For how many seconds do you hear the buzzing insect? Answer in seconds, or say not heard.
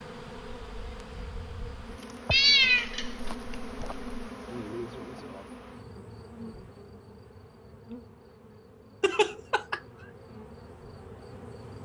12 s.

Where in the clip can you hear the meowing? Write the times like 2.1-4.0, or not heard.
2.3-4.0, 9.0-9.8.